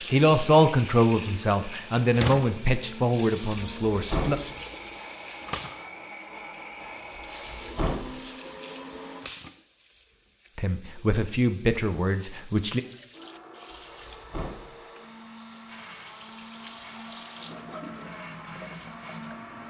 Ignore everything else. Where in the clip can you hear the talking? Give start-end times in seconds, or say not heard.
0.1-4.4, 10.6-12.8.